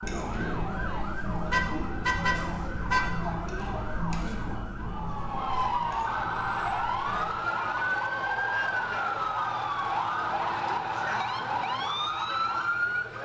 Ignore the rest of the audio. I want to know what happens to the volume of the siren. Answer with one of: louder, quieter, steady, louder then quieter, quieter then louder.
louder.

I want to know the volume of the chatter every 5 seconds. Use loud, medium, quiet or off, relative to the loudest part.
loud, medium, off.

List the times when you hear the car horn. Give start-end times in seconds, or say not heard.
1.5-3.2.